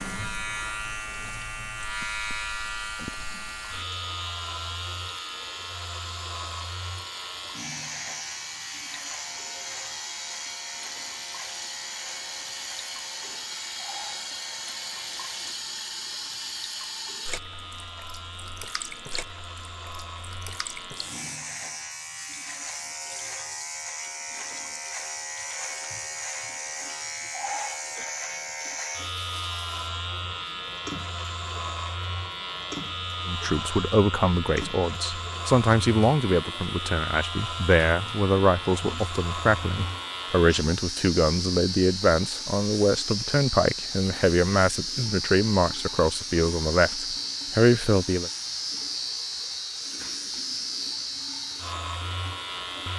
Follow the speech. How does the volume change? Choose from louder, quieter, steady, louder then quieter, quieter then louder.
steady.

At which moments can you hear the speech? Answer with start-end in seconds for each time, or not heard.
33.2-48.3.